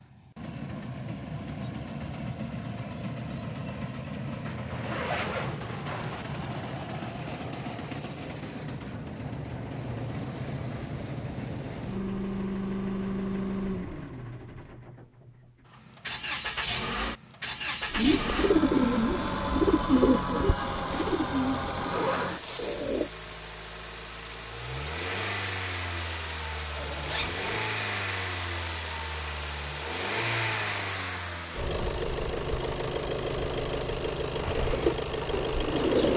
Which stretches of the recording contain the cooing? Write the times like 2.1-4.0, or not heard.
17.9-23.1, 34.4-36.1.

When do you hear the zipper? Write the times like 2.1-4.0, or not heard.
4.5-6.2, 21.9-22.6, 26.8-27.6.